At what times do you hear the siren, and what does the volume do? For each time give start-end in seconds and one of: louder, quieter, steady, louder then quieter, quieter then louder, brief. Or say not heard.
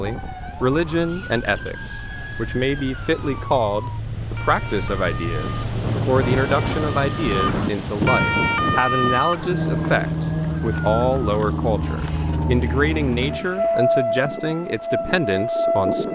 0.0-16.1 louder.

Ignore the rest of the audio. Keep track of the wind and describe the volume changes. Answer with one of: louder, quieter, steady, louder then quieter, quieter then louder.
louder.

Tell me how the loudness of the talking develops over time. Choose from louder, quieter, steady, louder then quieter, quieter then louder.
steady.